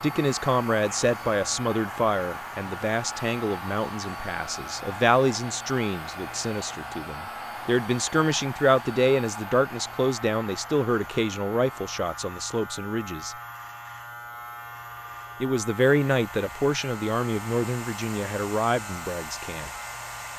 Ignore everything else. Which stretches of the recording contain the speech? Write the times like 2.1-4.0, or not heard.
0.0-13.3, 15.4-19.7.